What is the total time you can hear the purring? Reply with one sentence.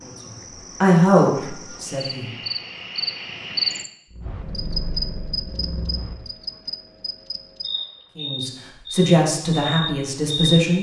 You can hear the purring for 2 seconds altogether.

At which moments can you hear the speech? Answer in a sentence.
The speech can be heard from 0.0 to 2.3 s and from 8.2 to 10.7 s.